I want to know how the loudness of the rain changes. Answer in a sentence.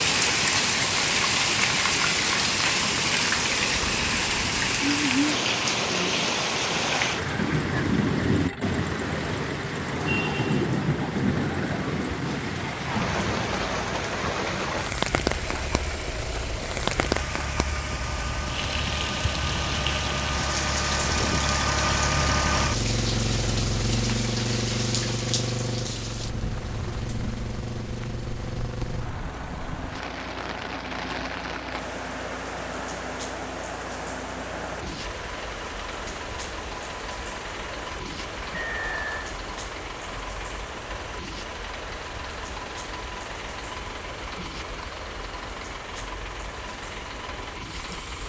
The loudness of the rain goes down.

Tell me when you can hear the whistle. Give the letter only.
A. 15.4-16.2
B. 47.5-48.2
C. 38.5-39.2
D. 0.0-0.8
C.